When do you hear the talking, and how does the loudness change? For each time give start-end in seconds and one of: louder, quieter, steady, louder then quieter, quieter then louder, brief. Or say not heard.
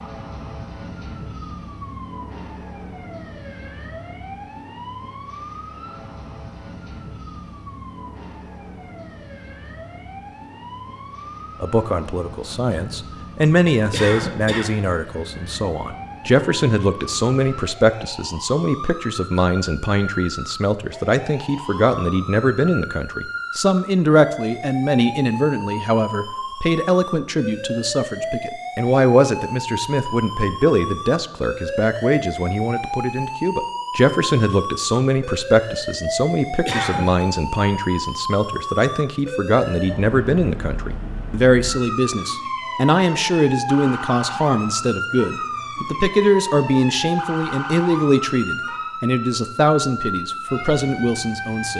11.6-51.7 steady.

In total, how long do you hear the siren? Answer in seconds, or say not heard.
52 s.